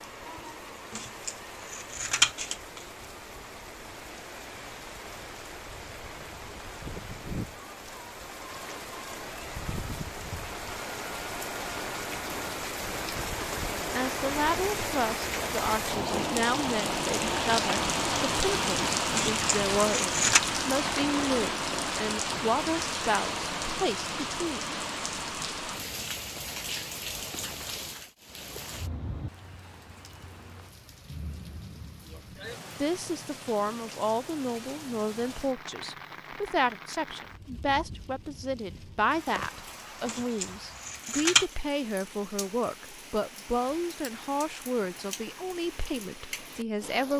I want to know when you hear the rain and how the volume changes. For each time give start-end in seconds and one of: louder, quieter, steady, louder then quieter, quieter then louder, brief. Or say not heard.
0.0-47.1 louder then quieter.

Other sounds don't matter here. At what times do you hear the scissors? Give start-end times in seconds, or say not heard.
0.9-2.8, 19.1-20.4, 40.0-41.5.